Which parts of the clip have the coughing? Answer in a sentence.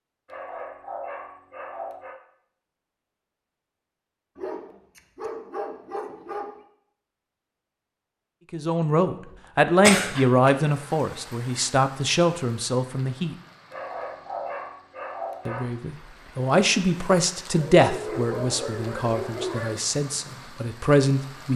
You can hear the coughing from 9.8 to 10.5 s.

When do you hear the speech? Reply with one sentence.
You can hear the speech from 8.5 to 13.3 s and from 15.4 to 21.5 s.